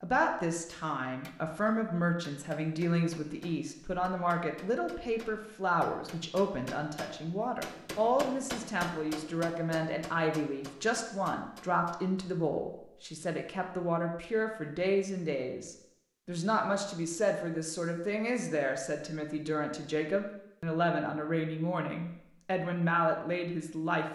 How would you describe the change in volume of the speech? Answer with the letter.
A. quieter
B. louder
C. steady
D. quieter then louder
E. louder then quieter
C.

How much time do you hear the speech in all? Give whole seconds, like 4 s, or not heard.
24 s.